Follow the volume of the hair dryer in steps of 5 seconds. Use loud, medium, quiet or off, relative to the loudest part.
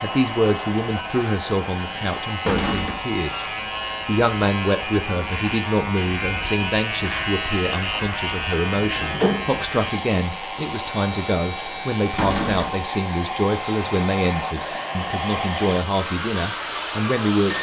medium, medium, loud, loud.